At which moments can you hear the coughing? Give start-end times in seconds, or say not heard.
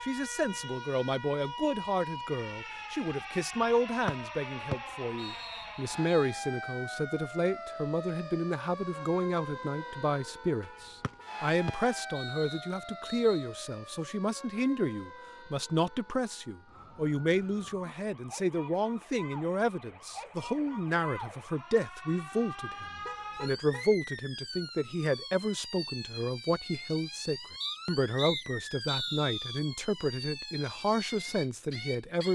not heard.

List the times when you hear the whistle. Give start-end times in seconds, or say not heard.
4.0-6.2, 11.0-13.4, 27.6-29.6.